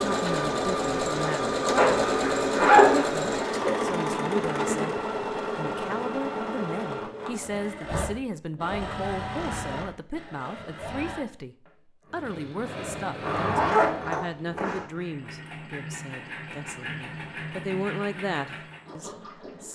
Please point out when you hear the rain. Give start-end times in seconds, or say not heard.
not heard.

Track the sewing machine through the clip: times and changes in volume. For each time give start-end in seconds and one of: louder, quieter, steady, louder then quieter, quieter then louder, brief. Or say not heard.
0.0-19.7 quieter.